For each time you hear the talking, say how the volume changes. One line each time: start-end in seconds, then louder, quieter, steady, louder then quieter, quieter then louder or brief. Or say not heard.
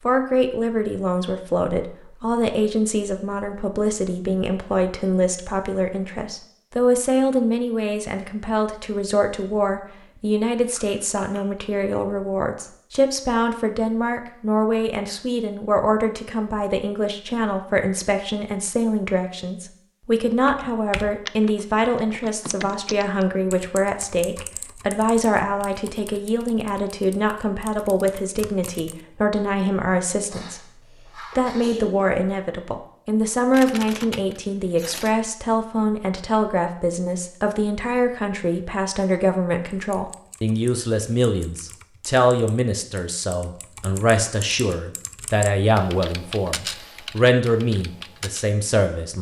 0.0-49.1 steady.